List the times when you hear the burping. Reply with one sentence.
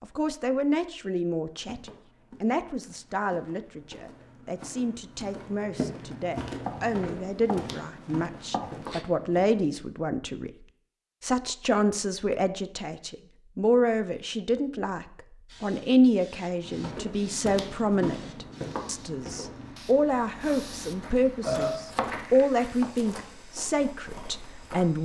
The burping can be heard from 21.1 to 21.9 s.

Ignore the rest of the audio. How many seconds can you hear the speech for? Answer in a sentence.
The speech can be heard for 24 seconds in total.